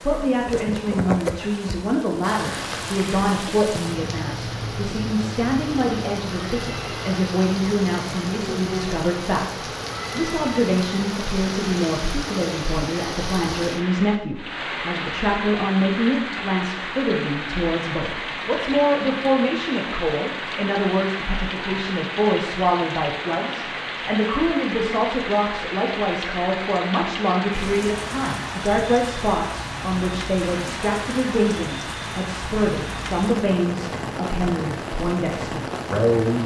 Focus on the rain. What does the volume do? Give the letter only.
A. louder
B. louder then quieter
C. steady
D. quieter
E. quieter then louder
C.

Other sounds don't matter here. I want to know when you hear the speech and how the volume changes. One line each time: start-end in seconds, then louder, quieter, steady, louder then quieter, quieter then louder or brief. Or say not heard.
0.0-36.4 steady.